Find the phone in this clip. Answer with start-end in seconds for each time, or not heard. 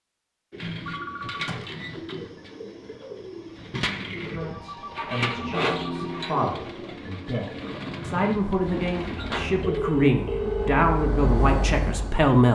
0.8-1.8, 4.3-6.3, 9.6-10.8.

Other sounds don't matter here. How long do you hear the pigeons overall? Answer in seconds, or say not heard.
9 s.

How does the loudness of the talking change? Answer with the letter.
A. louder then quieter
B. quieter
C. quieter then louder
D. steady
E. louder
E.